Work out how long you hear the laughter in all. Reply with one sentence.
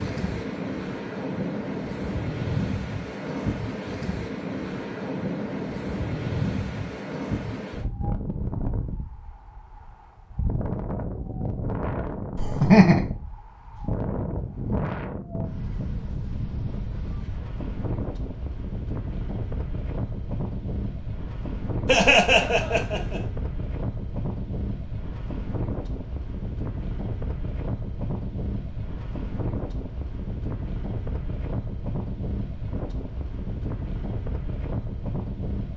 The laughter can be heard for 2 seconds in total.